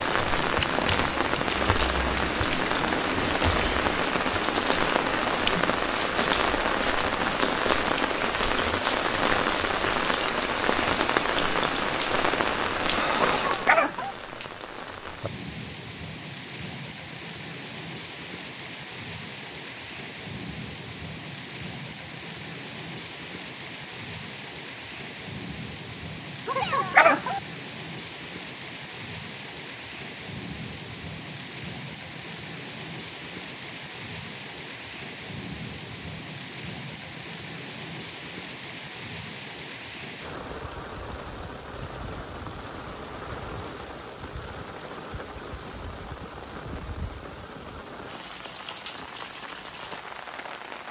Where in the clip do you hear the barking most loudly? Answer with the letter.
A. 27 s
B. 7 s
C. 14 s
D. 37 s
A.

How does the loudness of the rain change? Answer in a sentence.
The loudness of the rain goes down.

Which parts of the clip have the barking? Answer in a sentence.
You can hear the barking from 13.3 to 14.2 s and from 26.4 to 27.4 s.